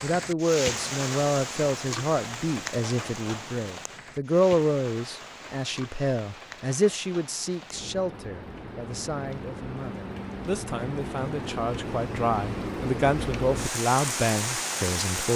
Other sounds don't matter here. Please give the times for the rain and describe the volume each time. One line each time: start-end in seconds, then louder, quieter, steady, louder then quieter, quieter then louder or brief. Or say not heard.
0.0-15.3 quieter then louder.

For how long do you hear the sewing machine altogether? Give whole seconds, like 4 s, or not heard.
not heard.